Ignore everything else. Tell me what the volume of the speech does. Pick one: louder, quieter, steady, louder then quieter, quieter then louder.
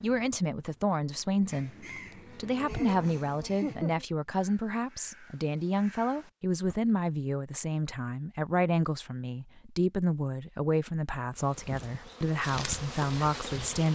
steady.